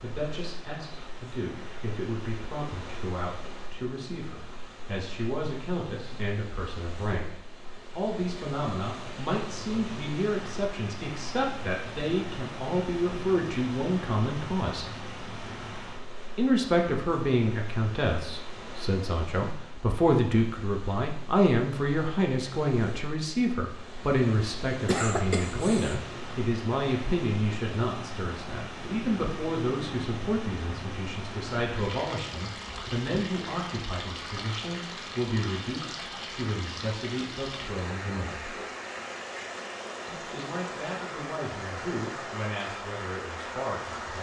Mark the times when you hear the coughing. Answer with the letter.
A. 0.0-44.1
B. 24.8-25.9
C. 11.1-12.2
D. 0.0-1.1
B.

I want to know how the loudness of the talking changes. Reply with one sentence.
The volume of the talking goes up, then down.